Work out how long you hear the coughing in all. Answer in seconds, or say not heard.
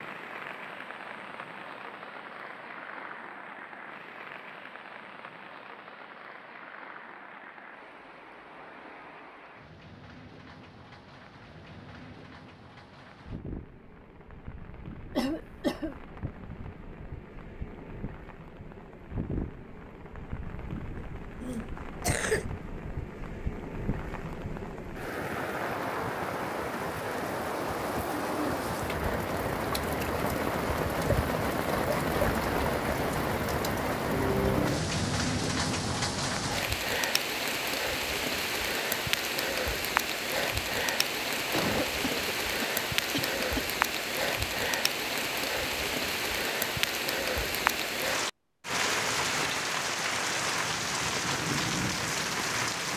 4 s.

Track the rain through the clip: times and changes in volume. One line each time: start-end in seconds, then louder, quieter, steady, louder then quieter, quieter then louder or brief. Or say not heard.
0.0-52.9 louder.